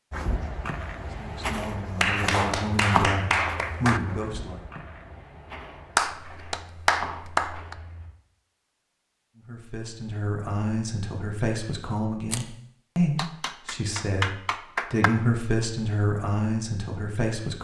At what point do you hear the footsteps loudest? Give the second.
3 s.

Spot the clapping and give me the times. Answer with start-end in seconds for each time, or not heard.
1.9-4.0, 6.0-7.8, 13.2-15.1.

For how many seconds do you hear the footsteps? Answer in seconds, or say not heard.
8 s.